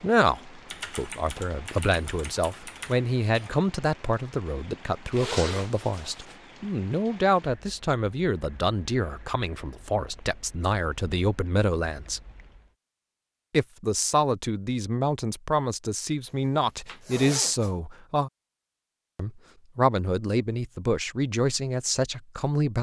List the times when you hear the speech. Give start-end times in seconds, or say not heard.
0.0-12.2, 13.5-18.3, 19.1-22.7.